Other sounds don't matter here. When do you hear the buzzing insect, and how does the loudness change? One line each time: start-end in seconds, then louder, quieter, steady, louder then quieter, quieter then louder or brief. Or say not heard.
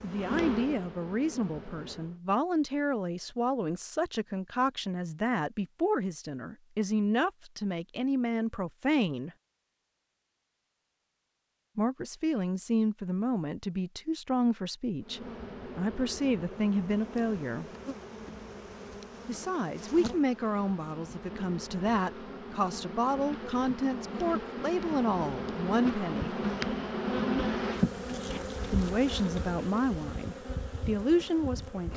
0.0-2.2 brief
15.0-31.9 louder then quieter.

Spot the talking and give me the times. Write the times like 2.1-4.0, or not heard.
0.0-9.3, 11.8-17.6, 19.2-26.4, 28.7-31.9.